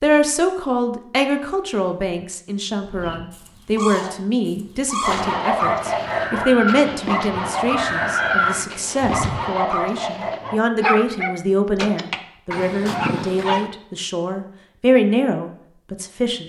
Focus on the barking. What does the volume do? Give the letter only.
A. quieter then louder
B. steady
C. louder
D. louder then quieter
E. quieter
B.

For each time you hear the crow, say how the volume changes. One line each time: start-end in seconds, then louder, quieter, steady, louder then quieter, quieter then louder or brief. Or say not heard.
2.9-9.4 louder.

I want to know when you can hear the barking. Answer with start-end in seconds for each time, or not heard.
5.0-13.7.